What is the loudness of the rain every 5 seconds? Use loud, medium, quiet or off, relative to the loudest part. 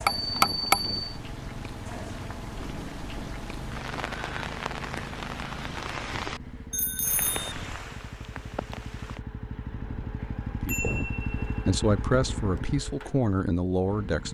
loud, loud, off.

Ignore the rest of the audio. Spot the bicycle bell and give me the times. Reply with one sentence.
The bicycle bell can be heard from 0.1 to 1.1 s, from 6.7 to 7.5 s and from 10.2 to 11.6 s.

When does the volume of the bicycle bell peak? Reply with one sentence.
The volume of the bicycle bell peaks at 1 second.